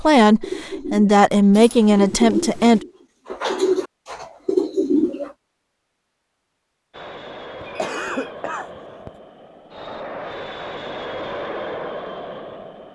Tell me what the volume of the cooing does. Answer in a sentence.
The volume of the cooing goes up.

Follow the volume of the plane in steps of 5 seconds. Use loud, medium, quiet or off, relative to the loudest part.
off, medium, loud.